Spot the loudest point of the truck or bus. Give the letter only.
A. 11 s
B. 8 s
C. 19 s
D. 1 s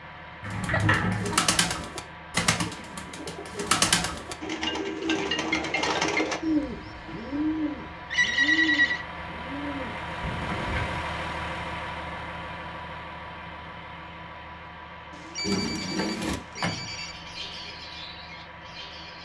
A.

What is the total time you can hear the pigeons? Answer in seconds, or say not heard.
14 s.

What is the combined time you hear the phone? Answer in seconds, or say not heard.
4 s.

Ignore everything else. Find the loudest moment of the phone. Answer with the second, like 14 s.
9 s.